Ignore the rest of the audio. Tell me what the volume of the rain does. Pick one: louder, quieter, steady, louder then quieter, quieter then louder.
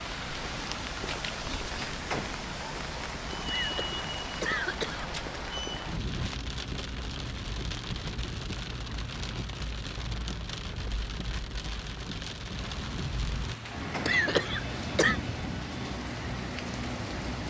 steady.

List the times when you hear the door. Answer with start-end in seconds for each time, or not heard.
1.9-2.5, 13.7-14.2.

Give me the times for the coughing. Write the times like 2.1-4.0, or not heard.
3.5-5.1, 14.1-15.2.